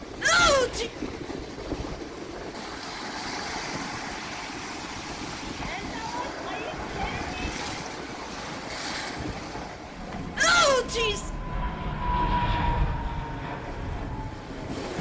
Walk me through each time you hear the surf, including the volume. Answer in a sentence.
The surf can be heard from 0.0 to 14.9 s, getting quieter.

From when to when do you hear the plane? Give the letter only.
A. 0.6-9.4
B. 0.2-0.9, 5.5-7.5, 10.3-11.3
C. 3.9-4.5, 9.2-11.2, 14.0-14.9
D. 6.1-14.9
D.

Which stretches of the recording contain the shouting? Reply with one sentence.
The shouting can be heard from 0.2 to 0.9 s, from 5.5 to 7.5 s and from 10.3 to 11.3 s.